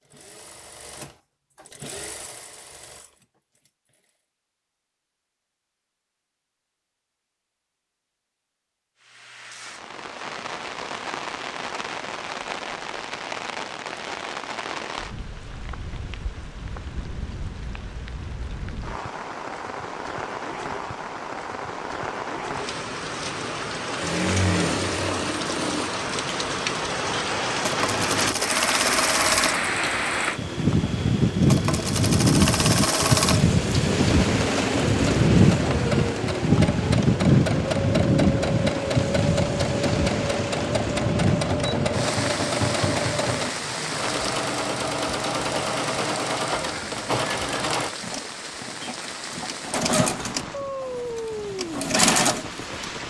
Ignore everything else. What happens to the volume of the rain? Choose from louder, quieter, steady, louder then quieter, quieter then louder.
louder then quieter.